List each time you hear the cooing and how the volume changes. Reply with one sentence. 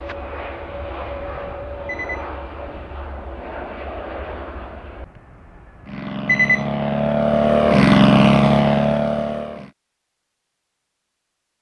The cooing can't be heard in this clip.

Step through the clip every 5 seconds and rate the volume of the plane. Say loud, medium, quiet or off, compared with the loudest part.
quiet, loud, off.